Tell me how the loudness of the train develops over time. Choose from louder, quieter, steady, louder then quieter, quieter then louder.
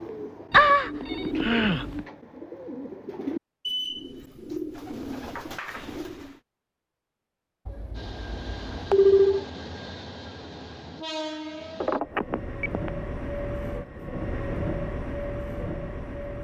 louder.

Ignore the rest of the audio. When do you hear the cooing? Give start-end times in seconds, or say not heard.
0.0-6.4.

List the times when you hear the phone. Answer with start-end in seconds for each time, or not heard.
0.5-2.0, 7.7-9.4, 11.8-12.9.